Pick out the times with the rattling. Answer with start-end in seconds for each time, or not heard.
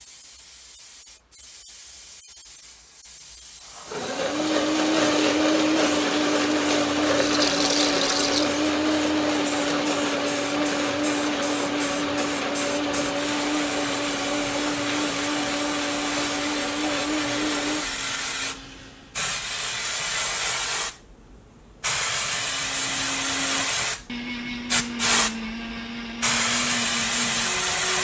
7.2-8.5.